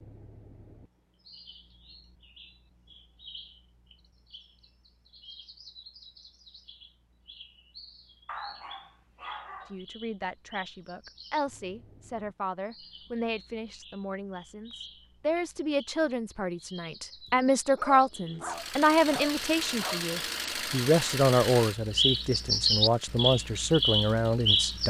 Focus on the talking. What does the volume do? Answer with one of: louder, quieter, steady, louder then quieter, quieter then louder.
louder.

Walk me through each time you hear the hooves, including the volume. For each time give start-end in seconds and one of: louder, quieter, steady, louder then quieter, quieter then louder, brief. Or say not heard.
not heard.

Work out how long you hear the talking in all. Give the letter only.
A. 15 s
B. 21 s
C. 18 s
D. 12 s
A.